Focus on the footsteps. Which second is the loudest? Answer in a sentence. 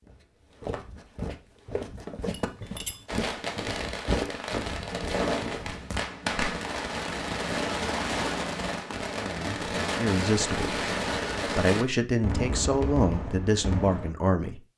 The loudest moment of the footsteps is at 4 seconds.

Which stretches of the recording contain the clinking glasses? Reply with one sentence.
The clinking glasses can be heard from 2.4 to 3.0 s.